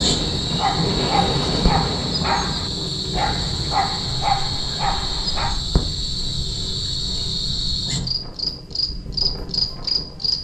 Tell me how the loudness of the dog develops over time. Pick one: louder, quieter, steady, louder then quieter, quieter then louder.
steady.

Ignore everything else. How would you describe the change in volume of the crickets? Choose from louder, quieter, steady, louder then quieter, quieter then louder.
steady.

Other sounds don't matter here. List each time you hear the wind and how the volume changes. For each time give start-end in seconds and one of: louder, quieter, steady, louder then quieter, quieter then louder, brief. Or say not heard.
0.0-10.3 quieter then louder.